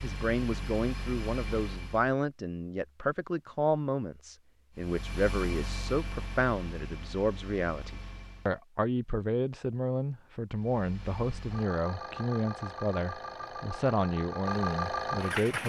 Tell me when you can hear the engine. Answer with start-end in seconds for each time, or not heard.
0.0-2.1, 4.8-8.6, 10.5-15.6.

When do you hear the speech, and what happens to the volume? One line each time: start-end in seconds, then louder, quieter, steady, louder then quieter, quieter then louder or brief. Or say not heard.
0.0-15.6 steady.